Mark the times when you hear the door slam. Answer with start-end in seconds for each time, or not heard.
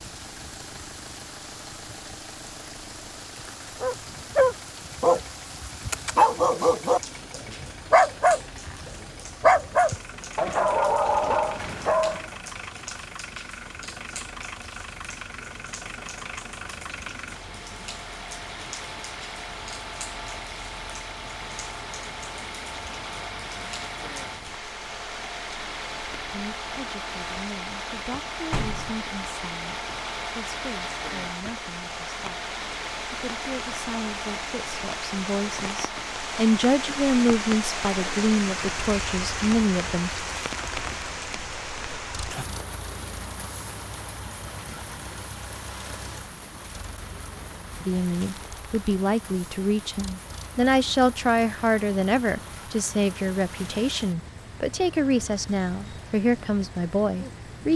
28.5-29.0.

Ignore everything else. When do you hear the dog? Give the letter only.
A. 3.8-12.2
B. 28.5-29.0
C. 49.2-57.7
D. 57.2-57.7
A.